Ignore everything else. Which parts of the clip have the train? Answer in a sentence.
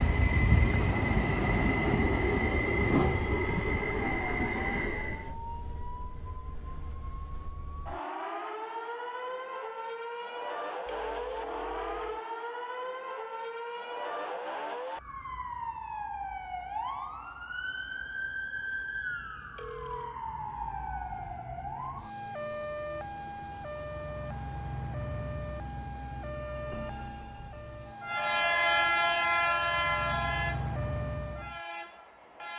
The train can be heard from 0.0 to 5.3 s and from 28.0 to 32.5 s.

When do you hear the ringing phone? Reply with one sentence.
You can hear the ringing phone from 10.8 to 12.2 s and from 19.6 to 20.2 s.